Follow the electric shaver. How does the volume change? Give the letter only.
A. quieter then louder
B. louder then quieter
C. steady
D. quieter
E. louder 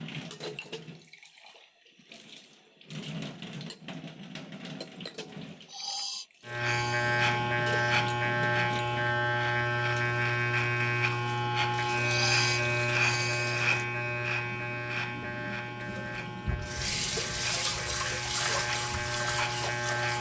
D.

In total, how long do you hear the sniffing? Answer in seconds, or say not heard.
4 s.